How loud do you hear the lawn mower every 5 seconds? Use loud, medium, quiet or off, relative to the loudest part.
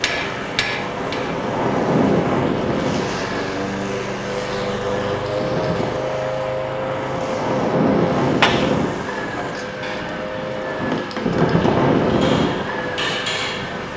loud, loud, medium.